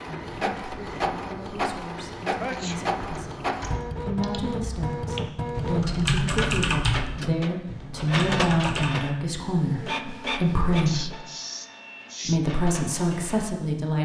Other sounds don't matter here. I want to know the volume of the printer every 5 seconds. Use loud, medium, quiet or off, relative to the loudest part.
loud, loud, medium.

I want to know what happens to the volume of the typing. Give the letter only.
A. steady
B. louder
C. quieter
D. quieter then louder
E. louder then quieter
E.